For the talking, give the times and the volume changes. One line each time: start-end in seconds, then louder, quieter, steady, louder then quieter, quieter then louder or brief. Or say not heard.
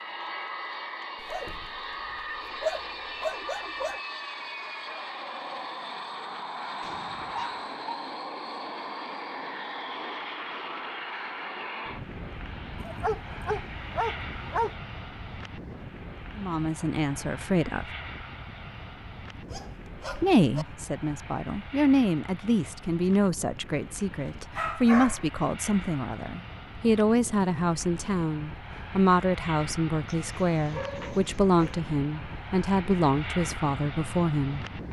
16.4-17.9 brief
20.1-34.6 steady.